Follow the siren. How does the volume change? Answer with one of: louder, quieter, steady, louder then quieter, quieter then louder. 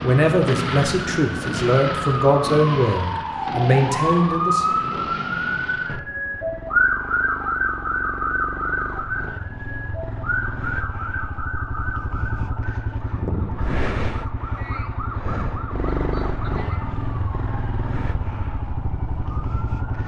quieter.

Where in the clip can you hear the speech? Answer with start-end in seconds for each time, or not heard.
0.0-4.7.